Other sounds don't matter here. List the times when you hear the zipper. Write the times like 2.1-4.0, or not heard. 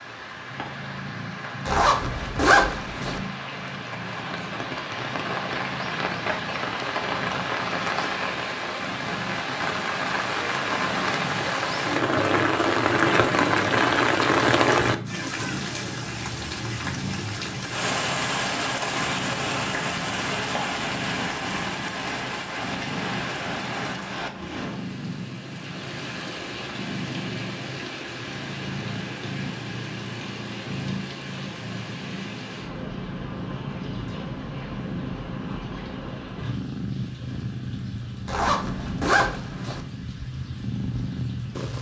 1.6-3.2, 38.2-39.9.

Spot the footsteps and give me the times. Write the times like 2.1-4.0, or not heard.
not heard.